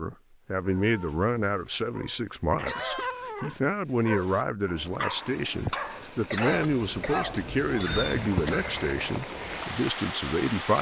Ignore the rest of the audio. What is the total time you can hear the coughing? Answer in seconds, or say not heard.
3 s.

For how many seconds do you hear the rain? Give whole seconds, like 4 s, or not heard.
6 s.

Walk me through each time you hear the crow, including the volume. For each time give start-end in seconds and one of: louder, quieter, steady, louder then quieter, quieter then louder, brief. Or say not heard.
not heard.